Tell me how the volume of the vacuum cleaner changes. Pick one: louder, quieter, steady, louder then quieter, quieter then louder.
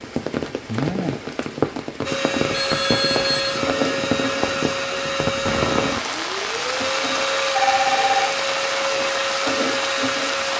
steady.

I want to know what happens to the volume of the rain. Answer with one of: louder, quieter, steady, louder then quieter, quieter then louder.
steady.